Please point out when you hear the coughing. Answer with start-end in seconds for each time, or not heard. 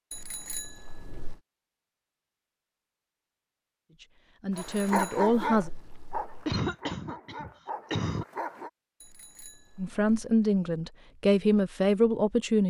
6.5-8.2.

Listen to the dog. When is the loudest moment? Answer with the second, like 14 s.
5 s.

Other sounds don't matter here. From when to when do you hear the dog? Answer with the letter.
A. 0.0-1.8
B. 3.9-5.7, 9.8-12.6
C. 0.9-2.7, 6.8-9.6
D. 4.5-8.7
D.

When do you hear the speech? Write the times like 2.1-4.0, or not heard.
3.9-5.7, 9.8-12.6.